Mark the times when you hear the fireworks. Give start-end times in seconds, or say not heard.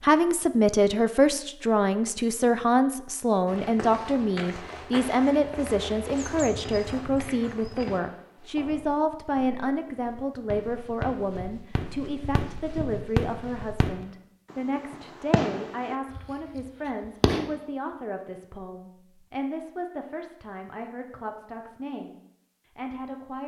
7.8-12.6, 13.2-17.5.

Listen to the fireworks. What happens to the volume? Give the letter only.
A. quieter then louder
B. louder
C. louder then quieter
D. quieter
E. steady
A.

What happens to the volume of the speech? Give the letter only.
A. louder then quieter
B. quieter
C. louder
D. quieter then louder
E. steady
B.